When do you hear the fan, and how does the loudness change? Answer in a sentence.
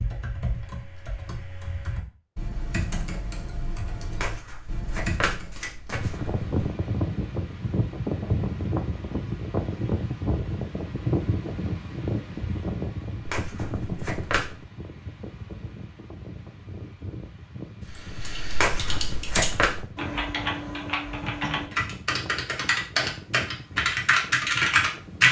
The fan can be heard from 5.9 to 25.2 s, getting quieter.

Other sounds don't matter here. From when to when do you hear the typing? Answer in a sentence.
The typing can be heard from 0.0 to 5.5 s and from 17.9 to 25.2 s.